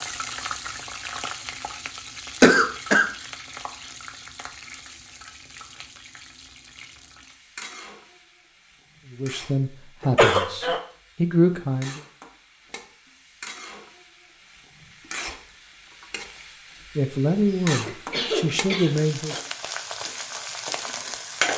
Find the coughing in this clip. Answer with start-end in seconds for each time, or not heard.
2.4-3.0, 10.0-10.8, 17.6-18.9.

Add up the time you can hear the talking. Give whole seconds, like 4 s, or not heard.
5 s.